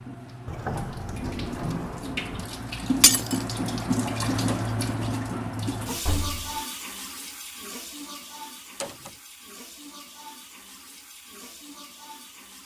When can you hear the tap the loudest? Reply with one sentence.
The loudest moment of the tap is at 4 seconds.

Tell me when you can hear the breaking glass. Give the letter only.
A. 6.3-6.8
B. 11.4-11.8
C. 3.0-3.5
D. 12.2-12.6
C.